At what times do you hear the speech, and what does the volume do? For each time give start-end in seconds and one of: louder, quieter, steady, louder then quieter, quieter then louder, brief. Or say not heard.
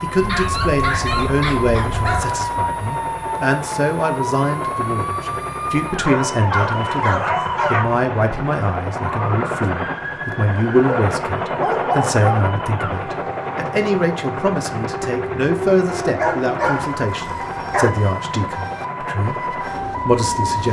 0.0-20.6 steady.